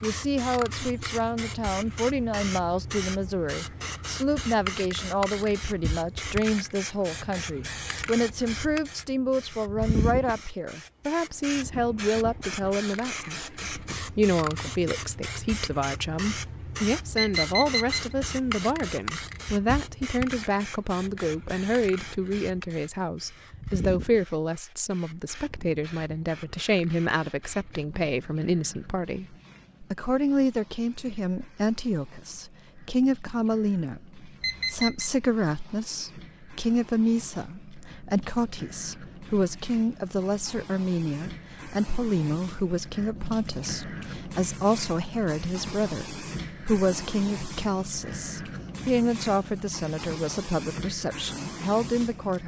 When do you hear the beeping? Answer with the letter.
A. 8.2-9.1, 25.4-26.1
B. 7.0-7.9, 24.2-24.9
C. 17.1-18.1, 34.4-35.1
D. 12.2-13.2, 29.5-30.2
C.